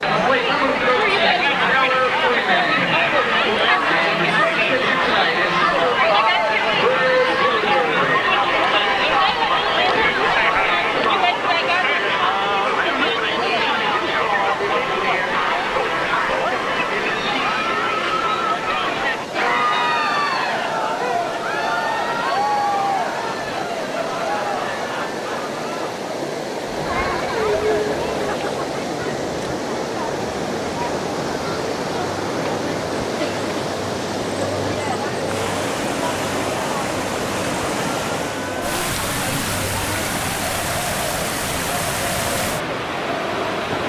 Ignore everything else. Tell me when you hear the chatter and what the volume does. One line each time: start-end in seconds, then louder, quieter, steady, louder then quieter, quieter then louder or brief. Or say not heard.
0.0-43.8 quieter.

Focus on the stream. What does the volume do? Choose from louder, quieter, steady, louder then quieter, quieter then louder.
louder.